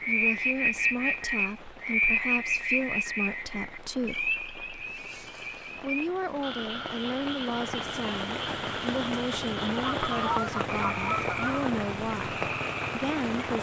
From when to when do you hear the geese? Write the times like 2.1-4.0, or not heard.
9.8-11.8.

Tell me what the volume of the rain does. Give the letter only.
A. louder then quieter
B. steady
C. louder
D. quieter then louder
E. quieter
C.